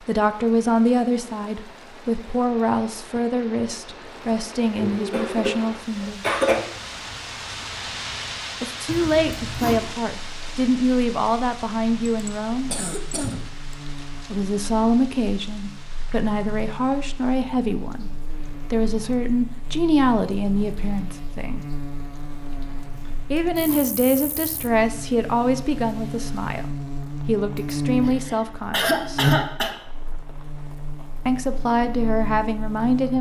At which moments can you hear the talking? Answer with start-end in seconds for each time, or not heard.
0.0-6.3, 8.6-12.7, 14.3-21.6, 23.3-29.2, 31.2-33.1.